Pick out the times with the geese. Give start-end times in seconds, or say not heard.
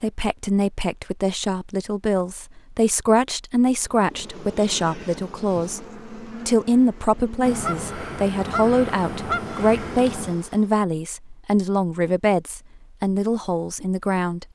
7.4-10.3.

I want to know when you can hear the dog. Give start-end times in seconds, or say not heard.
not heard.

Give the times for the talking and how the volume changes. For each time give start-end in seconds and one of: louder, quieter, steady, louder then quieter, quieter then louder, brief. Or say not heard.
0.0-14.4 steady.